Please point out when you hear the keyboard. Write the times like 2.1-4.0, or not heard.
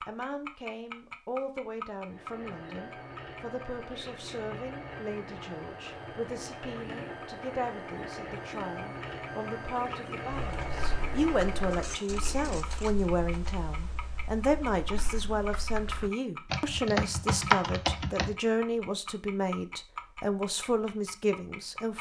10.3-18.4.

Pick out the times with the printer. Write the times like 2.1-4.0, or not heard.
2.0-13.1.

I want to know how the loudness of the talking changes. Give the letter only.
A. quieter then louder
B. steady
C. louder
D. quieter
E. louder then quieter
C.